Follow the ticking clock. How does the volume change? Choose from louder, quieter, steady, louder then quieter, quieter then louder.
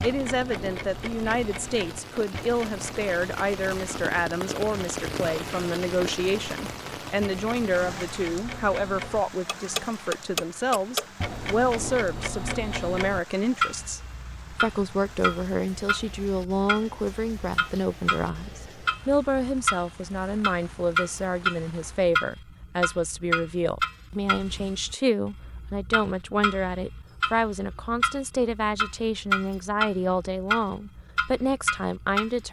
louder.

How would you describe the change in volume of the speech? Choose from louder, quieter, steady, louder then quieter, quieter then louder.
steady.